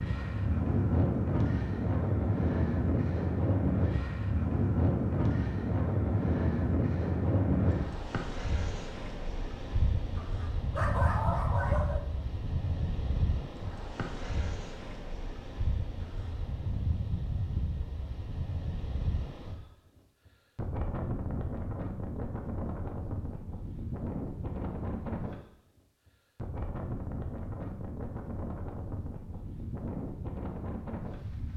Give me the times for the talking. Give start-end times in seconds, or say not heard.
not heard.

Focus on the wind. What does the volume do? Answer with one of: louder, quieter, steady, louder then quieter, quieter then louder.
quieter.